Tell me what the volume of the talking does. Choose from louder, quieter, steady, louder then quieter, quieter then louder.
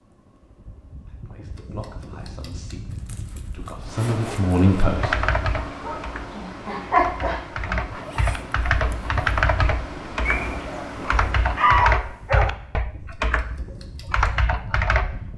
quieter then louder.